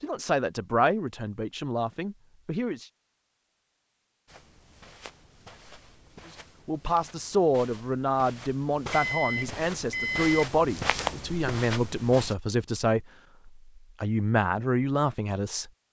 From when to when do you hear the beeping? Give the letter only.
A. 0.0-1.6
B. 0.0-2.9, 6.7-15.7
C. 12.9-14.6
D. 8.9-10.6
D.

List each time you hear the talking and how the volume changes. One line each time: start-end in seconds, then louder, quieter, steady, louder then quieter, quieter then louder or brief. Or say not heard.
0.0-2.9 brief
6.7-15.7 steady.